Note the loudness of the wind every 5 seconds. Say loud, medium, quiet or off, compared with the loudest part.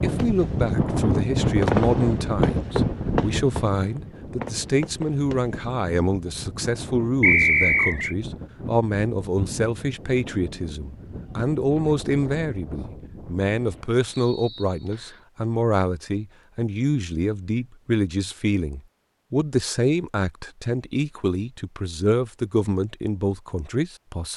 loud, medium, quiet, off, off.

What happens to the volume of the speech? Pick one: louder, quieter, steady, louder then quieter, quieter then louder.
steady.